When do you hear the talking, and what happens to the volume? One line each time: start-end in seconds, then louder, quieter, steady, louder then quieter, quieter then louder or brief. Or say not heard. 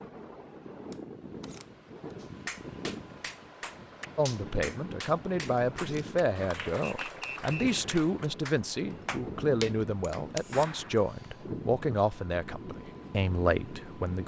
4.2-14.2 steady.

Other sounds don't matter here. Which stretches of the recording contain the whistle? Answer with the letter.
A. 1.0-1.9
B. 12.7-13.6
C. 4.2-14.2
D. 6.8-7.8
D.